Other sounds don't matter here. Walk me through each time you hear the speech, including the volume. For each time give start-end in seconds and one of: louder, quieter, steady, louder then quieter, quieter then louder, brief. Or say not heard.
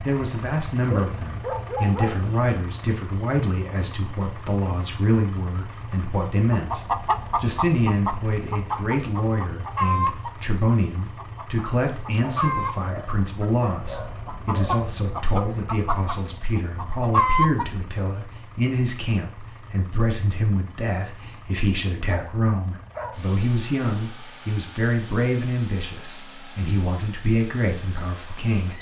0.0-28.7 steady.